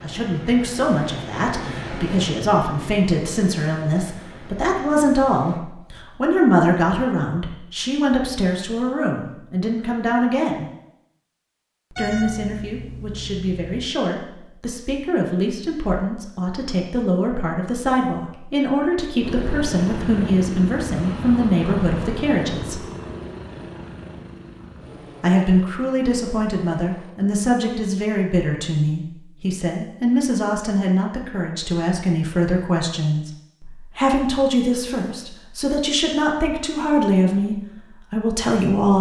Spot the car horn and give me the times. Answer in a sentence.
You can hear the car horn from 11.9 to 13.9 s.